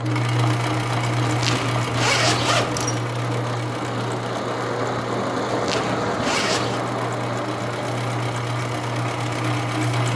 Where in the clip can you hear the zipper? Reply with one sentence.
You can hear the zipper from 1.2 to 3.0 s and from 5.5 to 6.8 s.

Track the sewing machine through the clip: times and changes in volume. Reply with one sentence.
You can hear the sewing machine from 0.0 to 10.1 s, getting quieter then louder.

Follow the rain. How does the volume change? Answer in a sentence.
The volume of the rain goes up, then down.